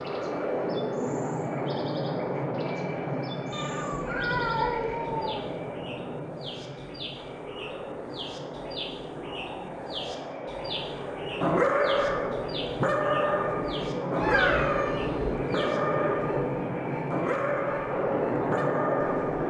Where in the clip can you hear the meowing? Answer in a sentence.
You can hear the meowing from 3.5 to 5.5 s and from 14.2 to 15.3 s.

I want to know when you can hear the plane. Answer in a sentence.
The plane can be heard from 0.0 to 19.4 s.